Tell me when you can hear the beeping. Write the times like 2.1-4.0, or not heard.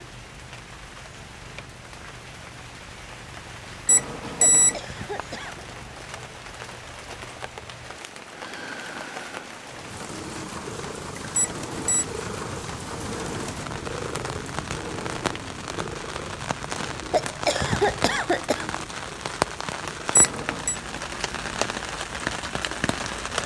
3.9-4.8, 11.3-12.1, 20.1-20.8.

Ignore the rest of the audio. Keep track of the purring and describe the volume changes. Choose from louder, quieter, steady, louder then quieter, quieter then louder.
louder then quieter.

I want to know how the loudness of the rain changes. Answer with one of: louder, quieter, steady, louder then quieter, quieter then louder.
louder.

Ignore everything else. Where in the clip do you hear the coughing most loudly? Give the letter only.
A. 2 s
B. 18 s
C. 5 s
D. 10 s
B.